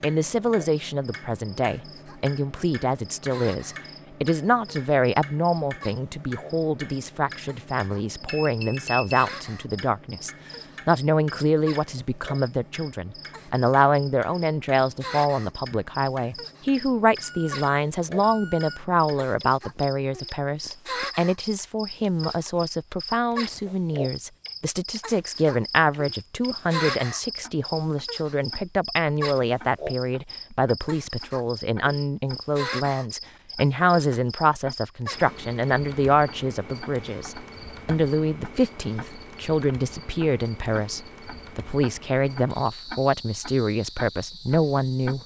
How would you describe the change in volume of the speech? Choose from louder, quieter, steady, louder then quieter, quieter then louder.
steady.